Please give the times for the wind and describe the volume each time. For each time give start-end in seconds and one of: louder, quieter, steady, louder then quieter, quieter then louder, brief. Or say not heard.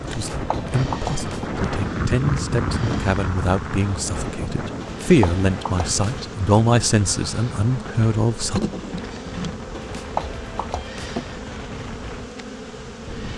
0.0-13.3 quieter.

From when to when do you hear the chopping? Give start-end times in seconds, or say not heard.
0.1-1.5, 4.8-6.2, 9.7-11.2.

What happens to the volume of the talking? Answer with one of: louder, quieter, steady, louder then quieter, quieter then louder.
louder.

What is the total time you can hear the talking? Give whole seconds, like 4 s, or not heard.
9 s.